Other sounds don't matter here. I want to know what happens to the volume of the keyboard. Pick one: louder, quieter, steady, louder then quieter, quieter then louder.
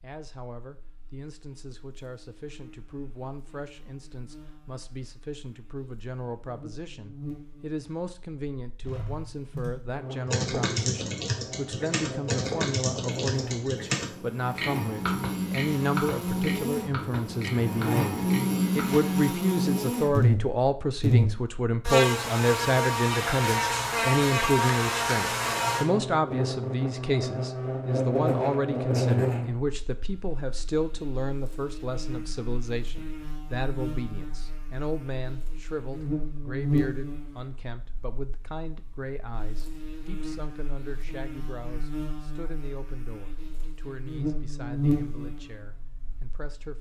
quieter.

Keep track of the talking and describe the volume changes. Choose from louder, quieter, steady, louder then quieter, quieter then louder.
louder then quieter.